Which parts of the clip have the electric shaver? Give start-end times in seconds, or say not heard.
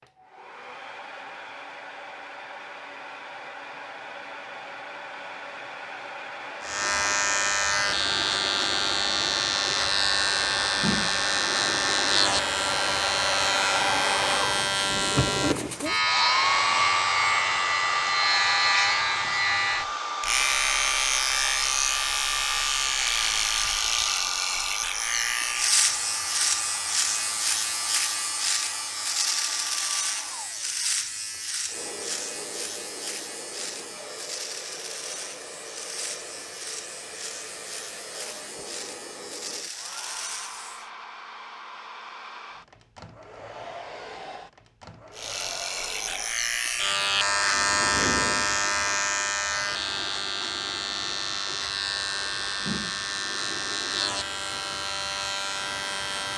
6.6-40.9, 45.1-56.3.